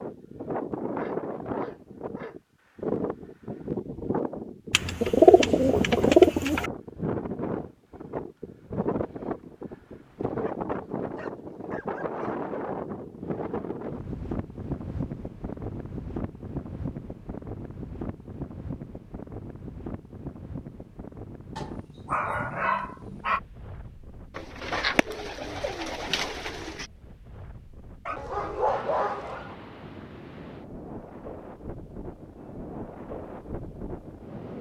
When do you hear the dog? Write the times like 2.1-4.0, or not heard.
0.9-2.4, 10.4-12.3, 21.6-23.4, 28.1-29.6.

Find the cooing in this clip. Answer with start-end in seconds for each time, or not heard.
4.7-6.7, 24.4-26.9.